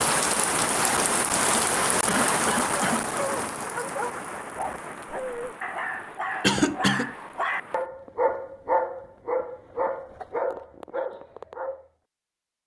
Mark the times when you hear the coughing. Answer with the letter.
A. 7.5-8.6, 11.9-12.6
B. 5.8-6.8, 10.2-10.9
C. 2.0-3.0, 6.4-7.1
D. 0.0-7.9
C.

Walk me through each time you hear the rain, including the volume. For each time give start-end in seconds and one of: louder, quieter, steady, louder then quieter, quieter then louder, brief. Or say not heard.
0.0-7.9 quieter.